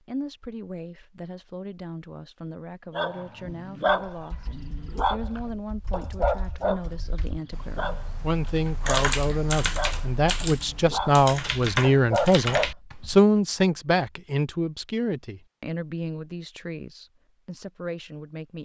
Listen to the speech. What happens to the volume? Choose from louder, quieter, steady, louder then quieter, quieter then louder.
louder then quieter.